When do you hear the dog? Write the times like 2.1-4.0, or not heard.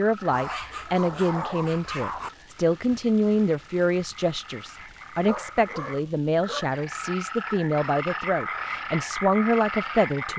0.3-2.3, 5.2-6.8.